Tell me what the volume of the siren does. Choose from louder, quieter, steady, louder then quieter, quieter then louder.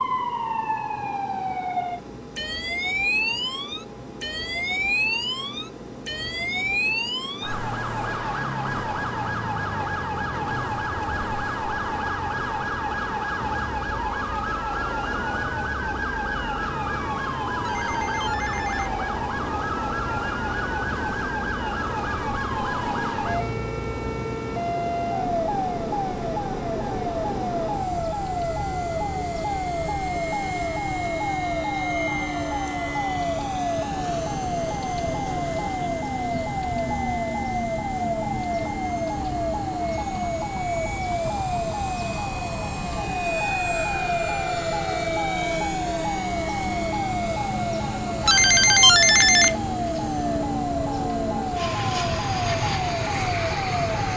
steady.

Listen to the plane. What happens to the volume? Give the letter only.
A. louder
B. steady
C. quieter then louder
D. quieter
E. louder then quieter
A.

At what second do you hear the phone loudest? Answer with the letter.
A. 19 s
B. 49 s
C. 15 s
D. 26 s
B.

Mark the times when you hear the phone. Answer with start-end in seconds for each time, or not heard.
17.6-18.9, 48.2-49.5.